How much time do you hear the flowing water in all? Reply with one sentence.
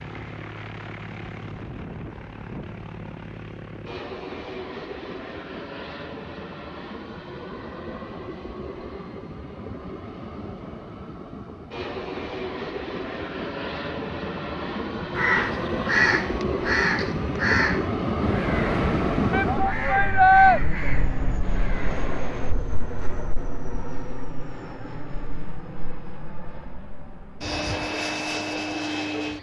You can't hear the flowing water here.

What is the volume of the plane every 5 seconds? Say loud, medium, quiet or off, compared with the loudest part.
medium, medium, medium, loud, medium, medium.